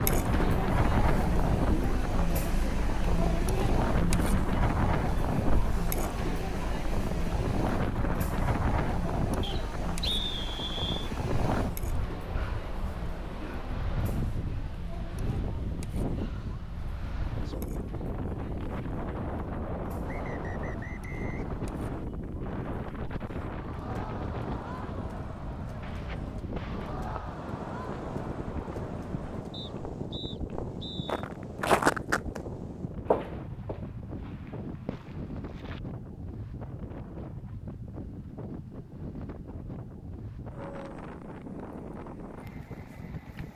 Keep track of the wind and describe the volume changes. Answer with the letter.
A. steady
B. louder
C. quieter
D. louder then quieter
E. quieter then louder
C.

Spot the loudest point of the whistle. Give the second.
10 s.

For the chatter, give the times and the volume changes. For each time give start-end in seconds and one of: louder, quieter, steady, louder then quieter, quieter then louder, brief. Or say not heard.
0.0-29.8 quieter then louder.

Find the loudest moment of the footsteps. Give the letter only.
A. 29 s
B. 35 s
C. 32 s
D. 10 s
C.